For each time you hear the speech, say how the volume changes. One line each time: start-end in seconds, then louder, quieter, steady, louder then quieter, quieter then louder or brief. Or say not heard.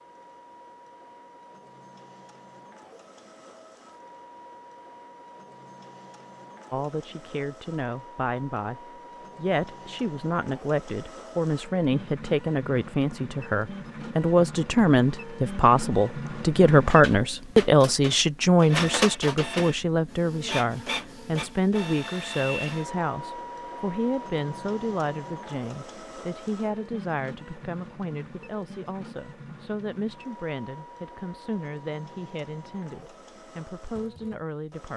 6.7-34.9 louder then quieter.